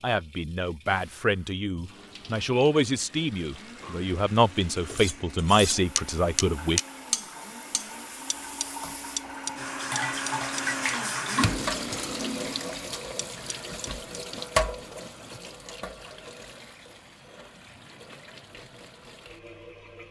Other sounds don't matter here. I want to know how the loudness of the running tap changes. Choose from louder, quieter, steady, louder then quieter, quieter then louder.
louder then quieter.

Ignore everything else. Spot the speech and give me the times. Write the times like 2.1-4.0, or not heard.
0.0-6.8.